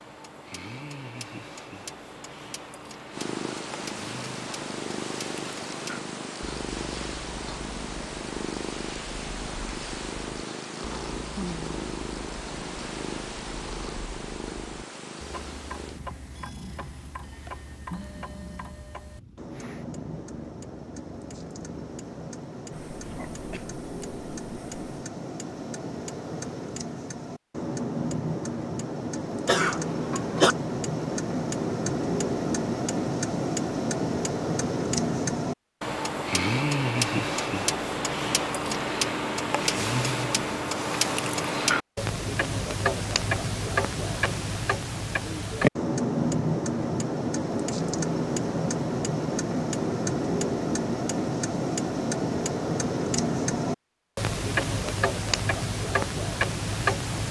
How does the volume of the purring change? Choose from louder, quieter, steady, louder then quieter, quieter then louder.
quieter.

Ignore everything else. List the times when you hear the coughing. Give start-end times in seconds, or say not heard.
23.0-23.6, 29.4-30.6.